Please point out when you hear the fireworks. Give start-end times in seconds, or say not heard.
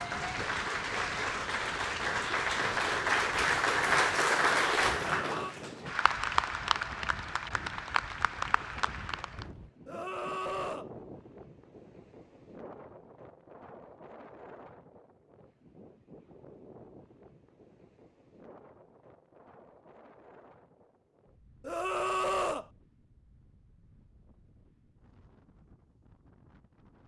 not heard.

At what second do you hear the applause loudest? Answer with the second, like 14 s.
4 s.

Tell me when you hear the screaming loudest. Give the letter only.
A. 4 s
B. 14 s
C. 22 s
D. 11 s
C.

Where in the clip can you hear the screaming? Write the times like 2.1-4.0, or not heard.
5.0-5.5, 9.8-10.9, 21.6-22.6.